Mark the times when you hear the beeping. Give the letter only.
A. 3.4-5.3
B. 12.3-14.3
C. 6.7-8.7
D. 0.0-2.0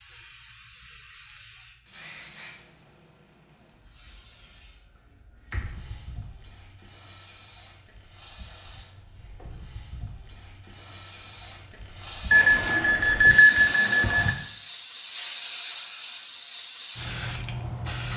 B.